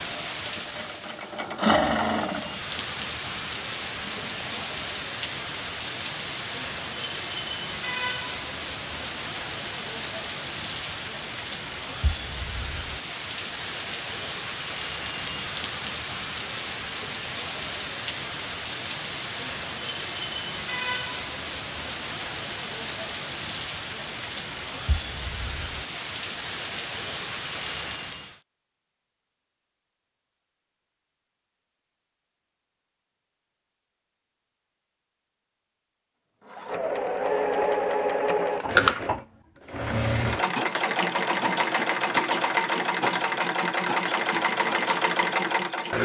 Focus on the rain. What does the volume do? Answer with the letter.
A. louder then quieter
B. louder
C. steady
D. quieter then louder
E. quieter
C.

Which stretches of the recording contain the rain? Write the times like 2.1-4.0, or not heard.
0.0-28.4.